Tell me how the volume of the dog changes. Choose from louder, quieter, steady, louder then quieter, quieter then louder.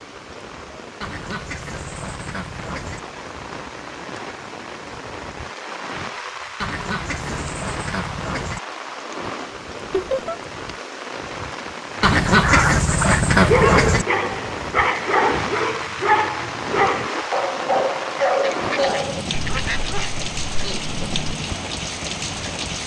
quieter.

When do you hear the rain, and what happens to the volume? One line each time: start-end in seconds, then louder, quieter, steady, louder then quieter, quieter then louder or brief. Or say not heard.
0.0-22.8 louder.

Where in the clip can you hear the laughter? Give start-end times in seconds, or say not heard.
9.9-10.3.